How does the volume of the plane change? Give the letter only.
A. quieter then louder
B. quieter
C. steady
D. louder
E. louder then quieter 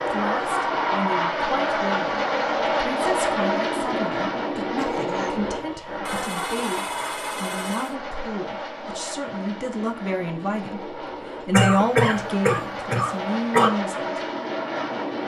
A.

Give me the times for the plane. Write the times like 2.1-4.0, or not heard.
0.0-15.2.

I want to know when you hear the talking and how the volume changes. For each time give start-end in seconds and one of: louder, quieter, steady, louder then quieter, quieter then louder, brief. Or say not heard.
0.0-14.2 louder.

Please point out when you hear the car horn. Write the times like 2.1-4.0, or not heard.
6.0-8.0.